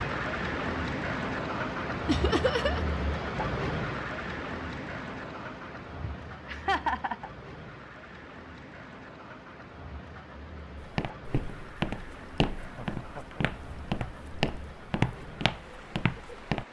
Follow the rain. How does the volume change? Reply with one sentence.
The loudness of the rain goes down.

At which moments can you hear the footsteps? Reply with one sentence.
You can hear the footsteps from 10.8 to 16.6 s.